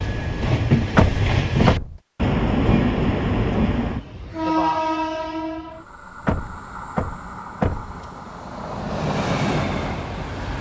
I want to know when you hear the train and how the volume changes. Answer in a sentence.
You can hear the train from 0.0 to 10.5 s, getting quieter then louder.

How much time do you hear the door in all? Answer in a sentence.
You can hear the door for 3 seconds altogether.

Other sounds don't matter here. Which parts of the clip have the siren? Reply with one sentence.
The siren can't be heard in this clip.